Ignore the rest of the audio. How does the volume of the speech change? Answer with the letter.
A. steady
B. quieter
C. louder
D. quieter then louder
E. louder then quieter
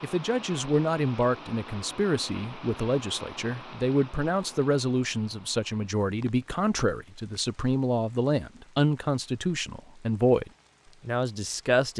A.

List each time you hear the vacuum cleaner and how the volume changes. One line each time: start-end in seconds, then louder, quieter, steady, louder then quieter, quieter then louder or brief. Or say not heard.
not heard.